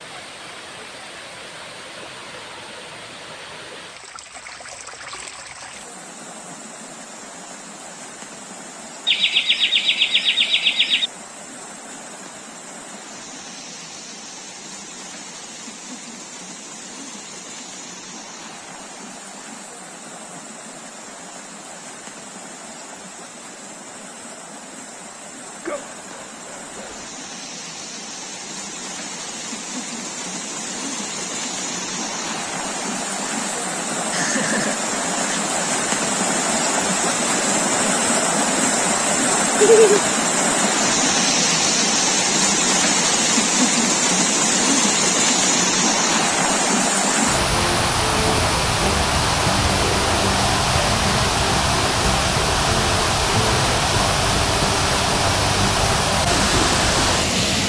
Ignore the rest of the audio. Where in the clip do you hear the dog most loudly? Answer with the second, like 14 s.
26 s.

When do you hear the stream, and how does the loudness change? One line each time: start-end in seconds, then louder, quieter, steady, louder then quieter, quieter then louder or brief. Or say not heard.
0.0-57.6 louder.